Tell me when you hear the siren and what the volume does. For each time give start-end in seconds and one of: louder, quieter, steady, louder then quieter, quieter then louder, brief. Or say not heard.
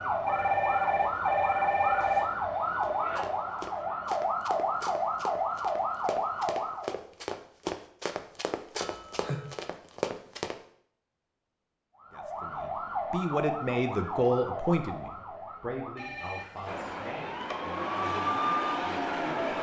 0.0-7.0 steady
11.9-19.5 quieter then louder.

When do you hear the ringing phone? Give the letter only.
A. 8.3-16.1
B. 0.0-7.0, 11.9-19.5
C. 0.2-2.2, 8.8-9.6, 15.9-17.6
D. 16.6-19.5
C.